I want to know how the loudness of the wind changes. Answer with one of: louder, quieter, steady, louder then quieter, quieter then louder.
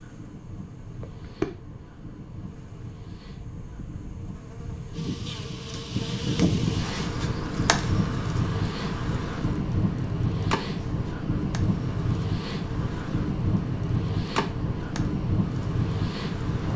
louder.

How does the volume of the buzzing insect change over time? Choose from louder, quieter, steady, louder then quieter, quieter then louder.
louder then quieter.